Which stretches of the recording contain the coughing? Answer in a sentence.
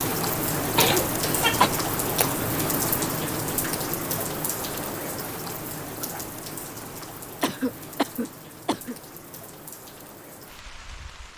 The coughing can be heard from 0.8 to 1.7 s and from 7.4 to 8.9 s.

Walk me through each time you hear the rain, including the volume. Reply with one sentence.
The rain can be heard from 0.0 to 11.3 s, getting quieter.